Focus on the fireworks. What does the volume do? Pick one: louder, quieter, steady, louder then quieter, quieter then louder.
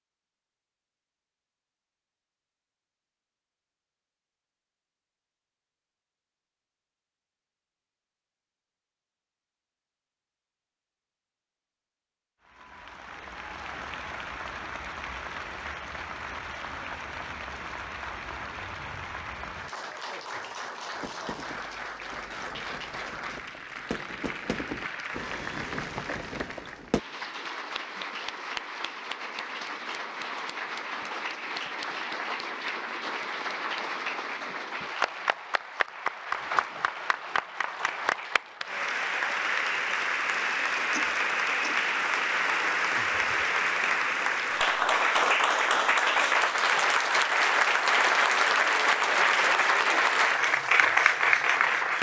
louder.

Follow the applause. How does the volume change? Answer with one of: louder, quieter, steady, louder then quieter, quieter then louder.
louder.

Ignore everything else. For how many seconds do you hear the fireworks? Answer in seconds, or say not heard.
6 s.